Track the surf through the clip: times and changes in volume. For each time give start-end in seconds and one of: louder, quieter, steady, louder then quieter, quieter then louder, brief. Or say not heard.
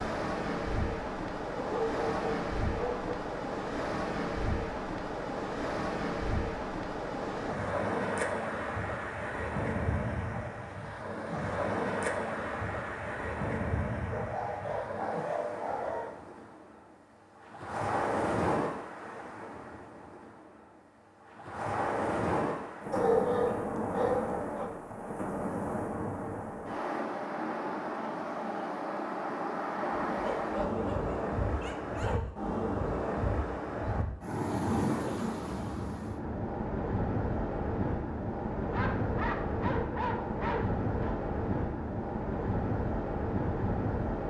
0.0-44.2 steady.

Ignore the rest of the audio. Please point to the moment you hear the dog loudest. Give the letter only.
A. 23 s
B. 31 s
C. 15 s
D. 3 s
A.